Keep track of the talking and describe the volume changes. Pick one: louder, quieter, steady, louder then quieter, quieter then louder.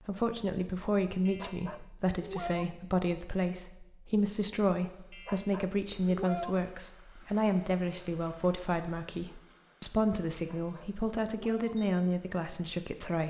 steady.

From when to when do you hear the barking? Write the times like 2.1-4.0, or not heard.
1.2-2.6, 5.1-6.5, 10.3-11.8.